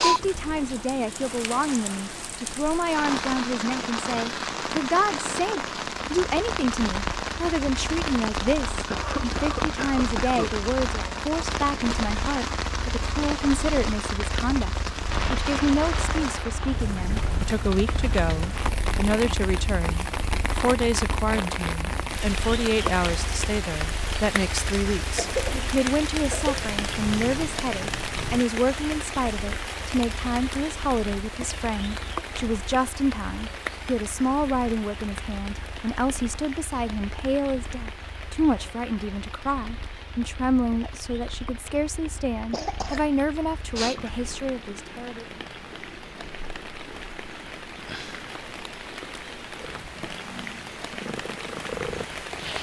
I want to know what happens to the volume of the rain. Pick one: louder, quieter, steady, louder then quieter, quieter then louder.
quieter.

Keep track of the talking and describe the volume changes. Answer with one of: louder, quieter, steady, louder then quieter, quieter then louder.
steady.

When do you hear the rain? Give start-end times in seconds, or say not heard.
0.0-52.5.